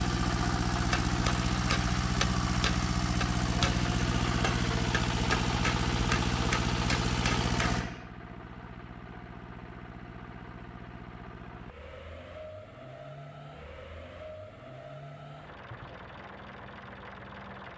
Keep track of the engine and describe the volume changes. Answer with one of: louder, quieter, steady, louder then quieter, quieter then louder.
quieter.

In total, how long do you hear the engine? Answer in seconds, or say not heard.
18 s.